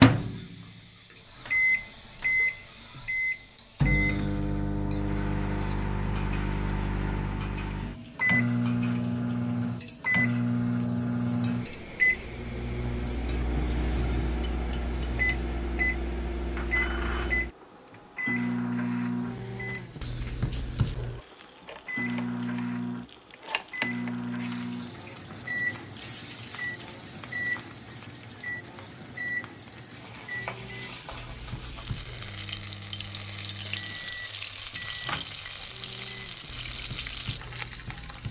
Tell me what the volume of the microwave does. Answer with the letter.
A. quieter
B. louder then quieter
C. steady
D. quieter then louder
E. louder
A.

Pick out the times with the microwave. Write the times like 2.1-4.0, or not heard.
0.0-38.2.